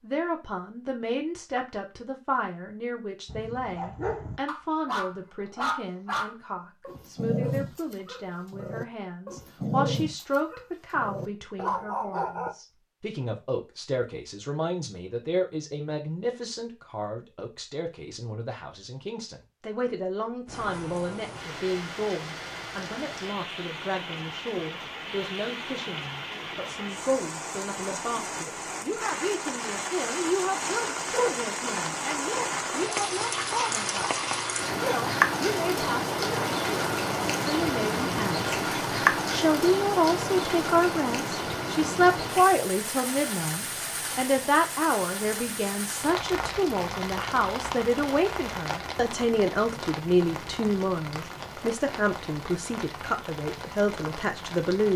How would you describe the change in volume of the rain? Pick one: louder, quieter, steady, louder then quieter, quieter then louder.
louder then quieter.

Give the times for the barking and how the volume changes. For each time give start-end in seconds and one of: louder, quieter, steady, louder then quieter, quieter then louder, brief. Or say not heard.
3.2-12.6 steady.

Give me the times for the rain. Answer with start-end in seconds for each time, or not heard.
20.4-54.9.